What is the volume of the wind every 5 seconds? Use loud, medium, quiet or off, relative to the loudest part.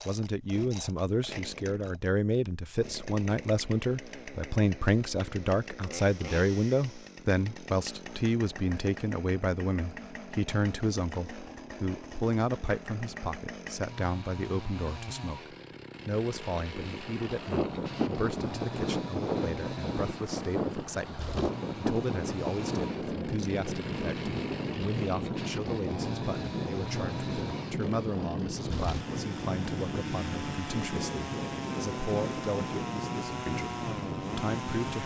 off, off, off, loud, loud, loud, loud.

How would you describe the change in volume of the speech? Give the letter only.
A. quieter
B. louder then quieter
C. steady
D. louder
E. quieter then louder
A.